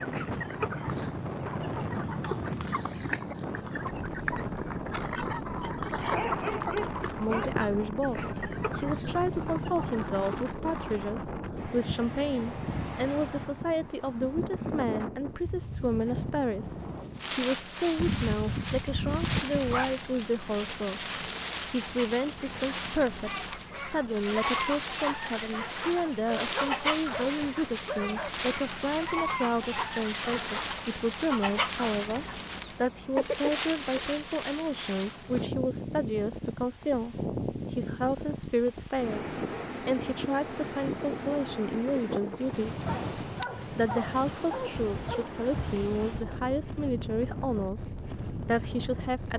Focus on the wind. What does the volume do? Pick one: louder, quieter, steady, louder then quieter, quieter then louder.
steady.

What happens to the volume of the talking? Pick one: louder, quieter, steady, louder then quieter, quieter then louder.
steady.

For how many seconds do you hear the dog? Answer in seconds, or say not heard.
8 s.